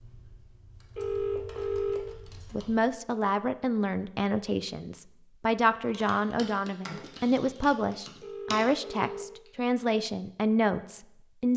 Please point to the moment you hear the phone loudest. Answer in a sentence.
The loudest moment of the phone is at 2 seconds.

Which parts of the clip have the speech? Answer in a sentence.
You can hear the speech from 2.5 to 11.5 s.